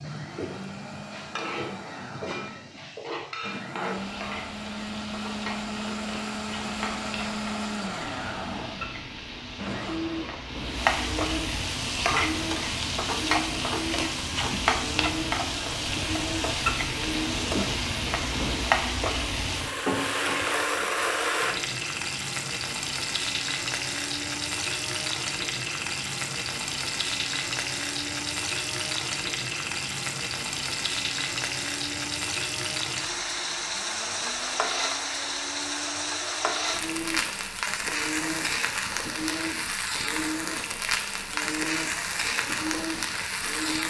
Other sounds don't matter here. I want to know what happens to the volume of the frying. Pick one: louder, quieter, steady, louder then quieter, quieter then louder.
louder.